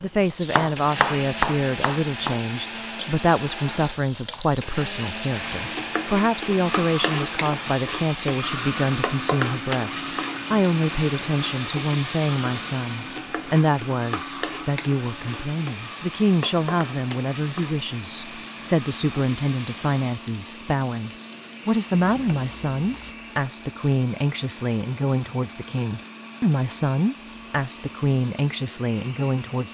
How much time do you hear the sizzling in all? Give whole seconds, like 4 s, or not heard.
23 s.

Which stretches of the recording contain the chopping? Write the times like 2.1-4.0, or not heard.
0.0-2.5.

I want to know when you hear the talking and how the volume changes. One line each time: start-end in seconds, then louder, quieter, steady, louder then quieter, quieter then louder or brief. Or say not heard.
0.0-29.6 steady.